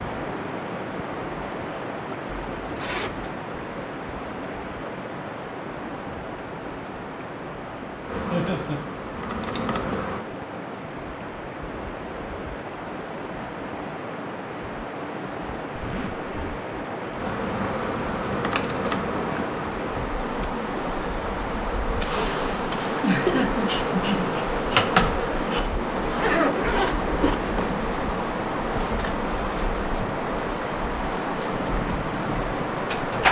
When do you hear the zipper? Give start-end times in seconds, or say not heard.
2.2-3.4, 15.8-16.6, 25.8-27.7.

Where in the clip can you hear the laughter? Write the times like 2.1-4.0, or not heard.
8.3-8.8, 23.0-24.3.